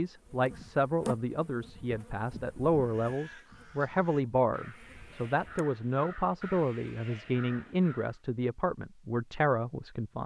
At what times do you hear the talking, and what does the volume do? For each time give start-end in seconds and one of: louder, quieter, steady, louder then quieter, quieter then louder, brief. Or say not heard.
0.0-10.2 steady.